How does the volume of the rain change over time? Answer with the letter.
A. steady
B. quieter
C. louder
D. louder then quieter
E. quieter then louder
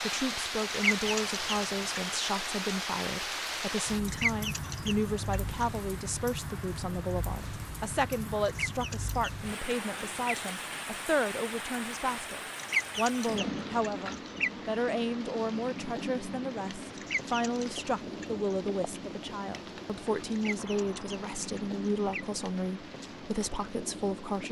B.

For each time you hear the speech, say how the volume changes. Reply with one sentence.
The speech can be heard from 0.0 to 24.4 s, at a steady volume.